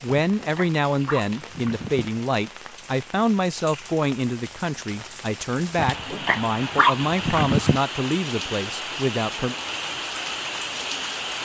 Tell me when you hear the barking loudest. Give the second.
7 s.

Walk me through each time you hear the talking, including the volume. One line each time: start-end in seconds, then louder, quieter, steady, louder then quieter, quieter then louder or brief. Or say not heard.
0.0-9.6 steady.